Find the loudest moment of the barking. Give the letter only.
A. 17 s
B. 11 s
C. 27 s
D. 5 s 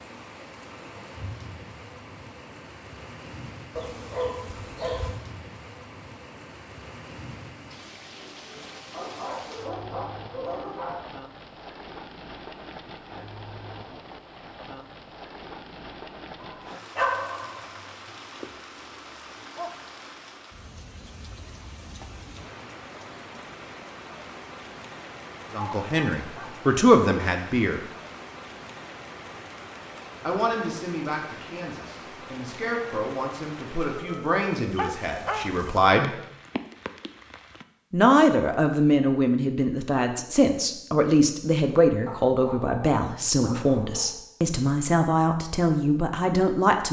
A.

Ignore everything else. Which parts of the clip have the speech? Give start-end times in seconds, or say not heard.
25.5-27.8, 30.2-36.1, 37.9-46.8.